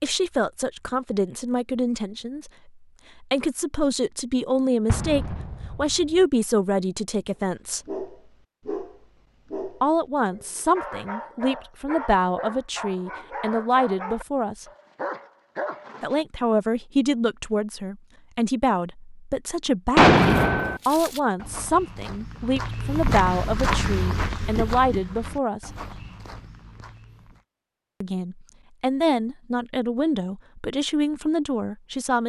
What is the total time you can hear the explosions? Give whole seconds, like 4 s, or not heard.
2 s.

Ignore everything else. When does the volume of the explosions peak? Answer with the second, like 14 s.
20 s.